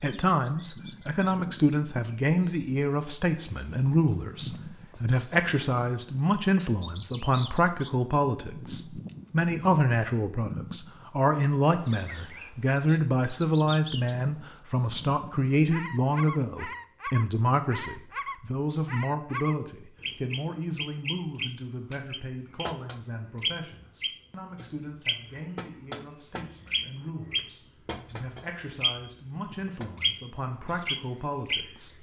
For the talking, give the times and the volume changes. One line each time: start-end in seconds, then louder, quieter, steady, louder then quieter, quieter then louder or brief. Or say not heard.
0.0-31.9 quieter.